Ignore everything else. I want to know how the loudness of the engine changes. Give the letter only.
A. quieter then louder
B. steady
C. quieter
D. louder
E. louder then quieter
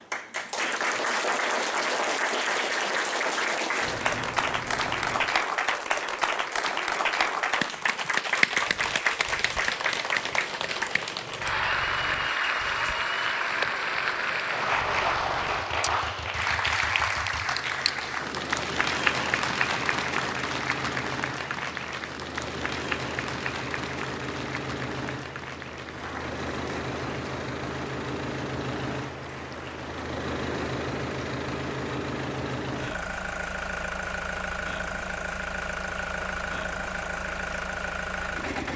D.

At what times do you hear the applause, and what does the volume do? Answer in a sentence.
You can hear the applause from 0.0 to 38.7 s, getting quieter.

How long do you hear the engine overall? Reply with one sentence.
The engine can be heard for 30 seconds in total.